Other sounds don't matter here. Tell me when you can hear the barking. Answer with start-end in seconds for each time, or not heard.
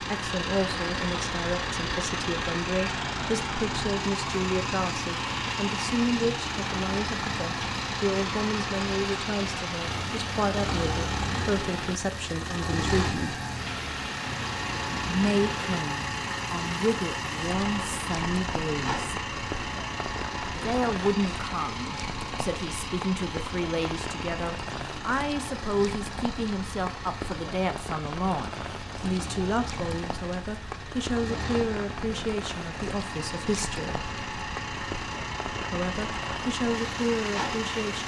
not heard.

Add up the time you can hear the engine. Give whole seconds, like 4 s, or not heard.
38 s.